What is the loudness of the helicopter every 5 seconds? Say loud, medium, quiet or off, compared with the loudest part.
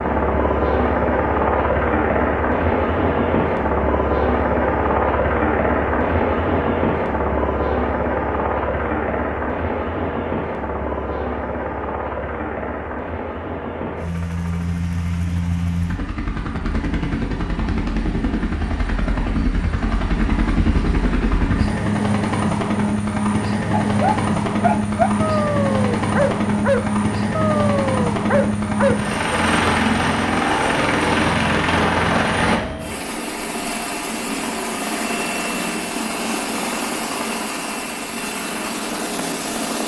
loud, loud, medium, medium, loud, loud, loud, medium.